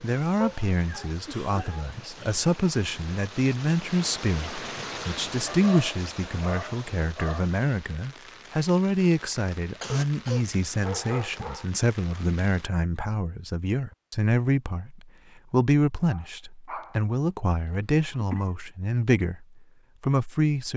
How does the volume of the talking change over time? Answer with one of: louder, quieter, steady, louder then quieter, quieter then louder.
steady.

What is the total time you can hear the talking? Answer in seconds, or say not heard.
21 s.